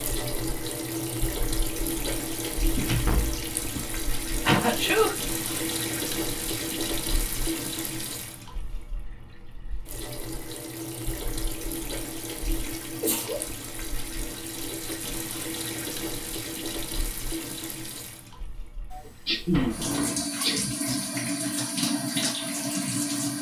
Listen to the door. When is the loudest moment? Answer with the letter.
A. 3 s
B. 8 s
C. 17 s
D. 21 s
A.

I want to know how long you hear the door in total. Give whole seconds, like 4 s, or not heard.
2 s.